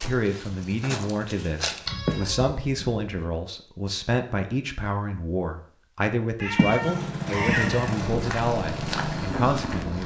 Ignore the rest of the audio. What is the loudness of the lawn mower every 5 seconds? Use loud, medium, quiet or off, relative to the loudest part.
off, loud.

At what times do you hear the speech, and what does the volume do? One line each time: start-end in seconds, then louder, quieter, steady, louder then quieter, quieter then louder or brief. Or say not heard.
0.0-10.0 steady.